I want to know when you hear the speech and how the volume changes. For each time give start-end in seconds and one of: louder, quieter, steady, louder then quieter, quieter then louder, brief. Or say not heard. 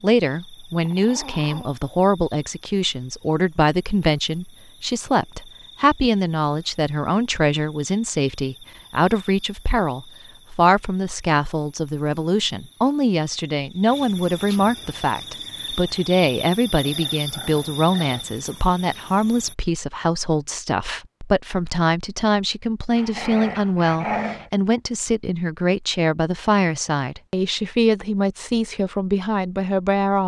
0.0-30.2 steady.